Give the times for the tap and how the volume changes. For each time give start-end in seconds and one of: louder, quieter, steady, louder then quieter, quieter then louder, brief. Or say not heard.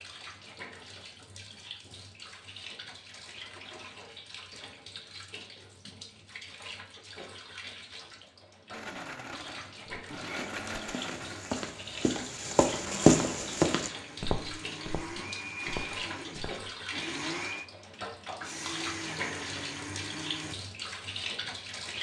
0.0-21.9 louder.